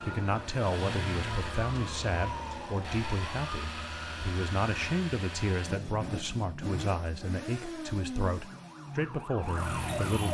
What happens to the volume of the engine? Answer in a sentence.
The loudness of the engine stays about the same.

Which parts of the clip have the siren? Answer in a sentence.
The siren can be heard from 0.0 to 5.0 s and from 8.4 to 10.2 s.